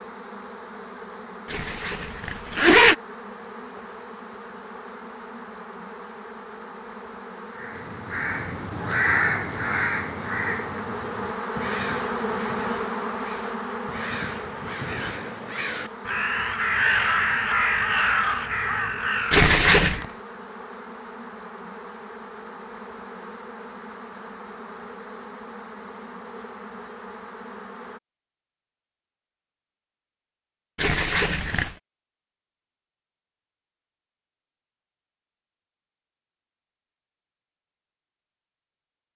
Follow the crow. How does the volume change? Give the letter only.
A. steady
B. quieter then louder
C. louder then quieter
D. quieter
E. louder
B.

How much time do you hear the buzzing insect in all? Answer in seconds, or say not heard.
28 s.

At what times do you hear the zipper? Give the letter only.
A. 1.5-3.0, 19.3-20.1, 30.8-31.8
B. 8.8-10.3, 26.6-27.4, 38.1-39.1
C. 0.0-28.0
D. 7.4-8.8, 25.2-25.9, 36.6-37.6
A.